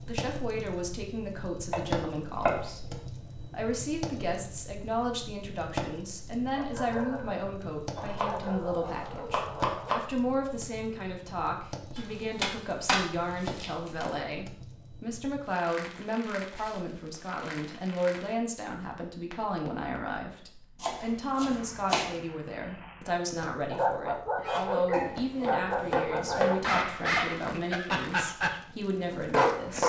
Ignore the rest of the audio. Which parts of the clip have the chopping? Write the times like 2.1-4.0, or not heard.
1.7-2.7, 8.0-10.0, 11.9-14.1, 20.8-22.2, 24.9-26.9.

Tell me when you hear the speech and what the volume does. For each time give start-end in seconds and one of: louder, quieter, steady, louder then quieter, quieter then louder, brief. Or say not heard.
0.1-29.8 steady.